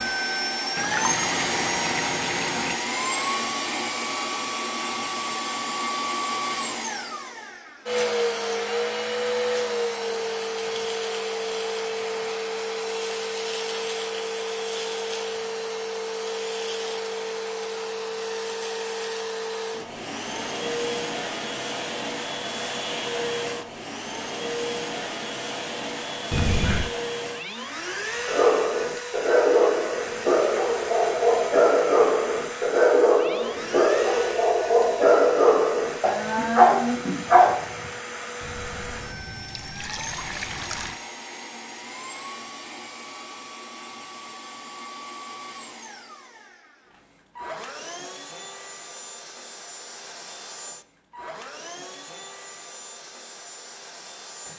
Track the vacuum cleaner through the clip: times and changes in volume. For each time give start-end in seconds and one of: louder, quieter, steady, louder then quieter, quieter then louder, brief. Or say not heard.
0.0-54.5 quieter.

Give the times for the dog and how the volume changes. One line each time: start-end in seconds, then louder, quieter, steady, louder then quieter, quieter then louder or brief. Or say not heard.
28.2-37.9 steady.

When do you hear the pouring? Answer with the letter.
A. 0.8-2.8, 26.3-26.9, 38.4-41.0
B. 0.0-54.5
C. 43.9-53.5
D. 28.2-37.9
A.